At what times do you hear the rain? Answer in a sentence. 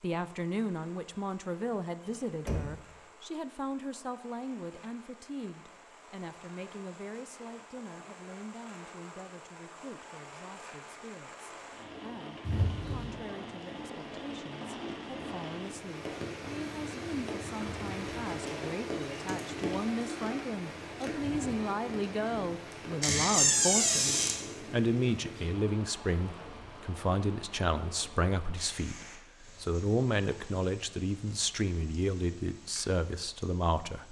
The rain can be heard from 0.0 to 34.0 s.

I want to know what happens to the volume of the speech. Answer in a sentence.
The loudness of the speech goes down, then up.